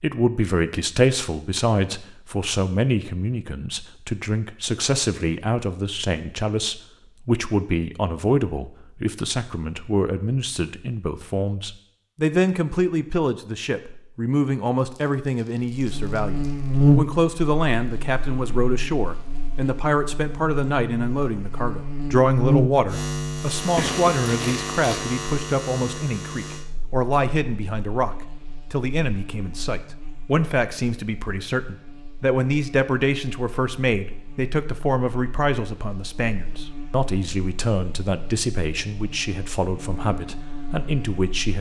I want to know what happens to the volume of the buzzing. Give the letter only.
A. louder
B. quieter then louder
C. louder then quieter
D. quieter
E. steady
B.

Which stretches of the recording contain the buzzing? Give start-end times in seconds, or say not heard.
15.7-41.5.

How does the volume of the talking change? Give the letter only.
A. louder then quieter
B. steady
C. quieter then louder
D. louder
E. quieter
B.